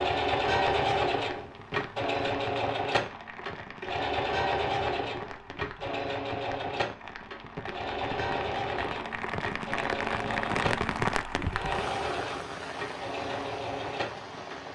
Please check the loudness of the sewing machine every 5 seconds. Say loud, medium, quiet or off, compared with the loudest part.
loud, medium, medium.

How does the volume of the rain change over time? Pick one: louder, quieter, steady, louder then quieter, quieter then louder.
louder then quieter.